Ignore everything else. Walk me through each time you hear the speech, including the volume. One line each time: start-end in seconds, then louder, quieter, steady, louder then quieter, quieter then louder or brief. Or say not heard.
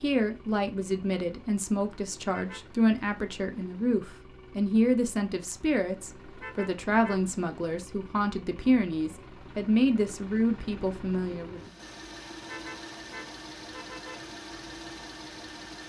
0.0-11.8 steady.